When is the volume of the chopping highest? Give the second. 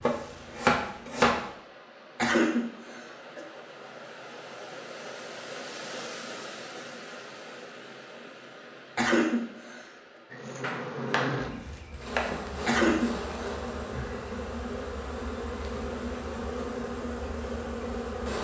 1 s.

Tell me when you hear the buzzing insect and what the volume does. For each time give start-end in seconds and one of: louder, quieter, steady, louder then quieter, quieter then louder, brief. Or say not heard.
10.3-18.3 steady.